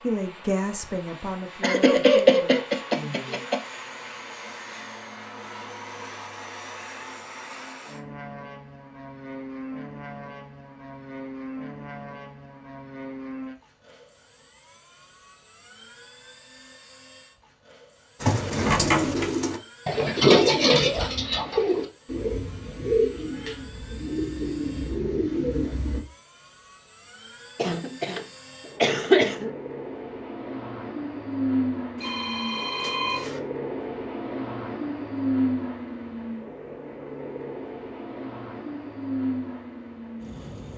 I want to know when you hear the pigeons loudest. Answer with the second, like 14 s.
20 s.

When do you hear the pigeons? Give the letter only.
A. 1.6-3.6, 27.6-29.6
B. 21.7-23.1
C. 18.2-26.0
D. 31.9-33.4
C.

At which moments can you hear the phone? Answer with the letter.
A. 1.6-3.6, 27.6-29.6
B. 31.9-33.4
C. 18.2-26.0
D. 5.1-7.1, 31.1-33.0
B.